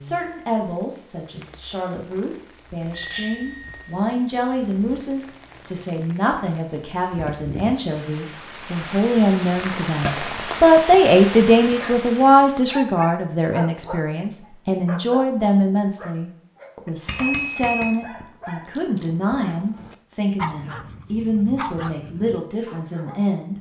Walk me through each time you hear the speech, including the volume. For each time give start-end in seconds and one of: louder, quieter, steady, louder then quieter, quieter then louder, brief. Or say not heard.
0.0-23.5 louder then quieter.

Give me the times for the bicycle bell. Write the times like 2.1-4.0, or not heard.
2.9-4.0, 17.1-18.0.